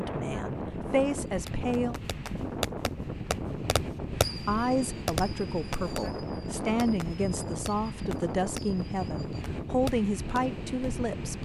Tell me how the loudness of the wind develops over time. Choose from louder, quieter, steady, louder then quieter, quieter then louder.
steady.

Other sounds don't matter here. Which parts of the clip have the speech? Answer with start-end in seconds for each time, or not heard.
0.0-1.9, 4.5-11.4.